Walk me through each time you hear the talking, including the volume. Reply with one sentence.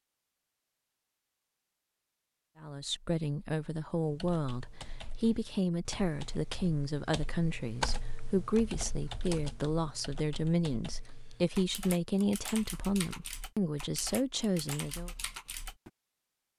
You can hear the talking from 2.6 to 15.1 s, at a steady volume.